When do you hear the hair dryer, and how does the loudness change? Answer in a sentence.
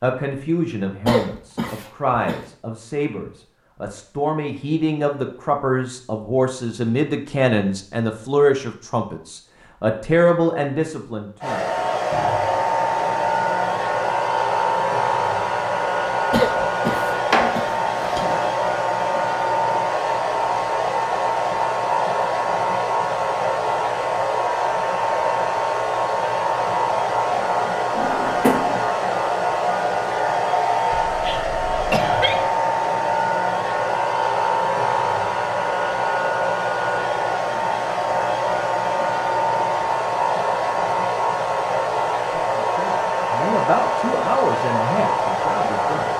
You can hear the hair dryer from 11.4 to 46.1 s, at a steady volume.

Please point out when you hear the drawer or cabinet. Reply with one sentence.
The drawer or cabinet can be heard from 16.9 to 18.5 s and from 27.9 to 28.8 s.